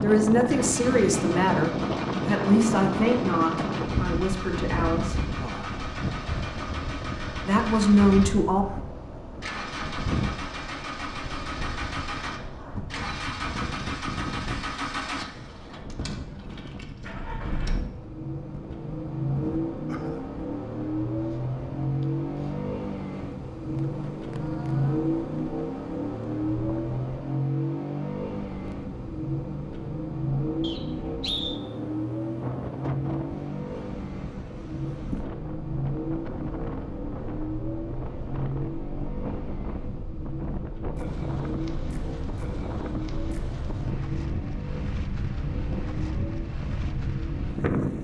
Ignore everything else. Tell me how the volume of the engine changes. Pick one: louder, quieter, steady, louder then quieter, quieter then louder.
louder then quieter.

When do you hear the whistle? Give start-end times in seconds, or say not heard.
30.6-31.6.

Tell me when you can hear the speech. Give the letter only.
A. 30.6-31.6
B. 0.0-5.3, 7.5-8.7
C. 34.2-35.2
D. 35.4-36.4
B.